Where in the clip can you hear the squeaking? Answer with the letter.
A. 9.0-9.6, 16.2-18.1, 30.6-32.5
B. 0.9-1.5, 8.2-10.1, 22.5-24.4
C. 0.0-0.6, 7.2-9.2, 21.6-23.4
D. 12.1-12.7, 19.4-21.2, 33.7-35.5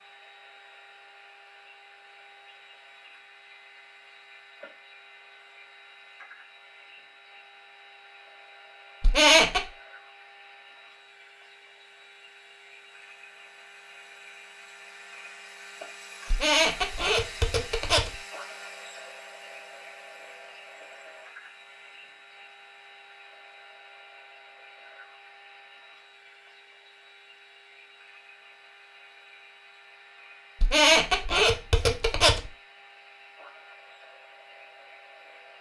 A.